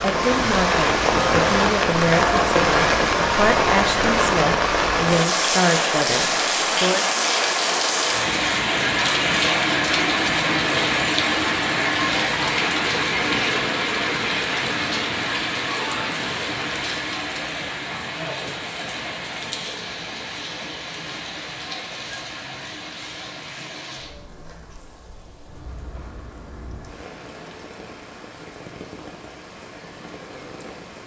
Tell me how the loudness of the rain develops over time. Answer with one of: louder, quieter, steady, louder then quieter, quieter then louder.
quieter.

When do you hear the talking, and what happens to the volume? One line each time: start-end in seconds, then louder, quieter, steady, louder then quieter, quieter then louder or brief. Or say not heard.
0.0-7.0 steady.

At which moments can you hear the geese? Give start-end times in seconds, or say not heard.
not heard.